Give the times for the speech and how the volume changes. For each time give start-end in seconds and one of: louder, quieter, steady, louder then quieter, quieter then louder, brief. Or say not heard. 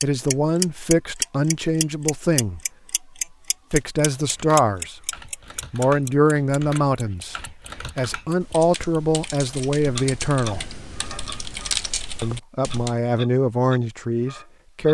0.0-2.6 brief
3.7-5.1 brief
5.7-10.7 quieter then louder
12.2-14.8 brief.